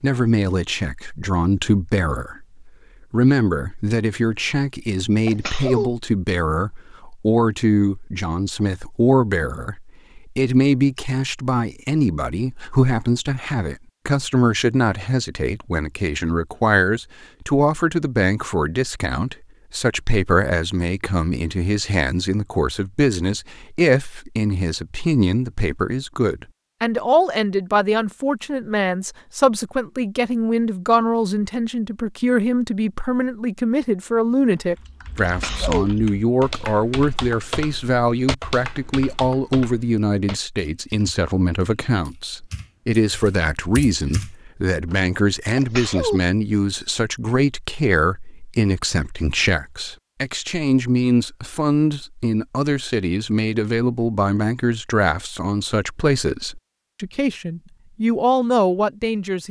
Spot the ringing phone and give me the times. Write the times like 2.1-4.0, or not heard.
not heard.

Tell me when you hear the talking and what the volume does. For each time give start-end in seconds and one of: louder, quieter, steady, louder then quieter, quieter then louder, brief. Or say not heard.
0.0-59.4 steady.